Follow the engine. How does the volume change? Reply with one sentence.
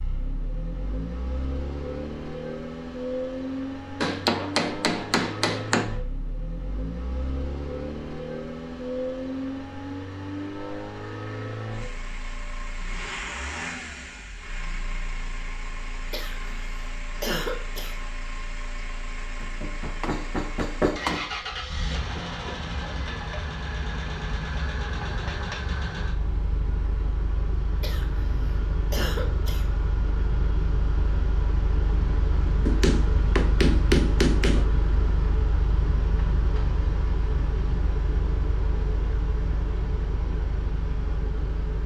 The volume of the engine stays about the same.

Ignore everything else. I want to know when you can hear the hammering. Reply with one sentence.
You can hear the hammering from 4.0 to 5.8 s, from 19.4 to 21.2 s and from 32.6 to 34.6 s.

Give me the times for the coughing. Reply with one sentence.
The coughing can be heard from 16.1 to 17.9 s and from 27.8 to 29.6 s.